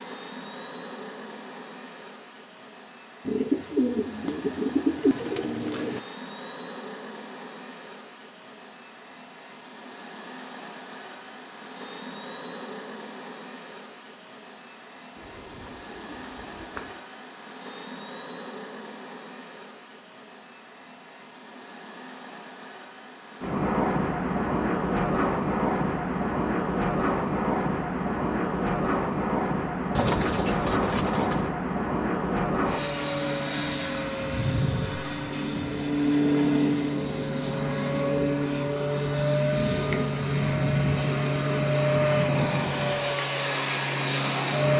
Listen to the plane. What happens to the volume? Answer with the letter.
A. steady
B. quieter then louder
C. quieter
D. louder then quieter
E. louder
E.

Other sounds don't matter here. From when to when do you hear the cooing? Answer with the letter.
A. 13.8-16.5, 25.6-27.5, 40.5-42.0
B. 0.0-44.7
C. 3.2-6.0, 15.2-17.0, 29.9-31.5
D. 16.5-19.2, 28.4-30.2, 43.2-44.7
C.